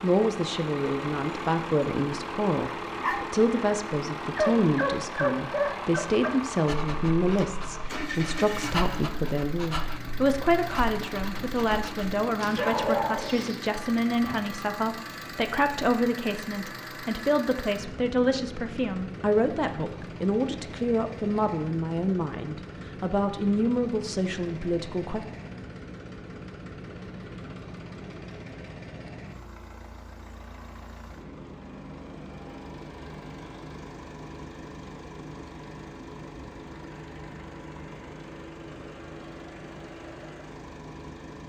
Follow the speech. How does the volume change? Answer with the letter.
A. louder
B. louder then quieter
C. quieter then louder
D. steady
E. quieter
D.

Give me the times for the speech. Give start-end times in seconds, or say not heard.
0.0-25.2.